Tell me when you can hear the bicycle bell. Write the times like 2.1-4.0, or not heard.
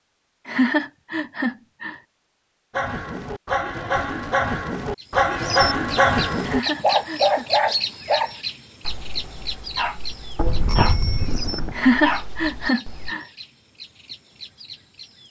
10.3-11.8.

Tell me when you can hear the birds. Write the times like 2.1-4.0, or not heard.
5.0-15.2.